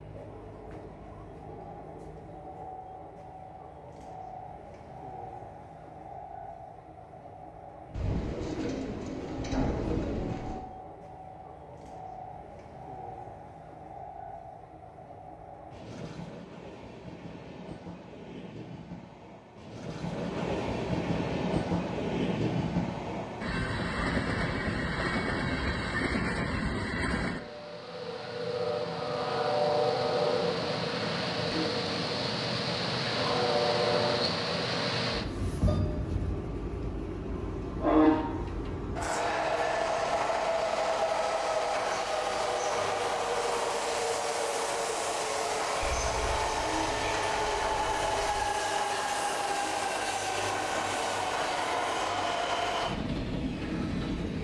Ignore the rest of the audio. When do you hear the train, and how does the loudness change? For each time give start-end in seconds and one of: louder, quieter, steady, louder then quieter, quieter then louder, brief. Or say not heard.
0.0-54.3 louder.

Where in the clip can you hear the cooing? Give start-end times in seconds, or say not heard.
7.9-10.7, 45.8-48.5.